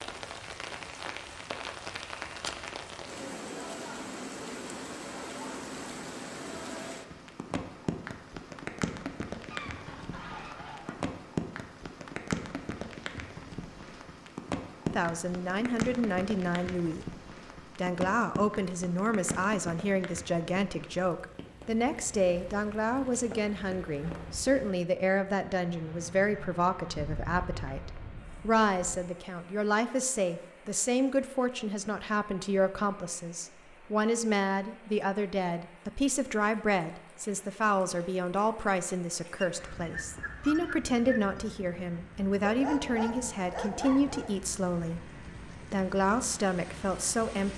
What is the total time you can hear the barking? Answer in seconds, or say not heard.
2 s.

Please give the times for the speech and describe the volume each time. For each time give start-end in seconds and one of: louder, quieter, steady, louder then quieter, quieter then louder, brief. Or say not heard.
14.8-47.5 steady.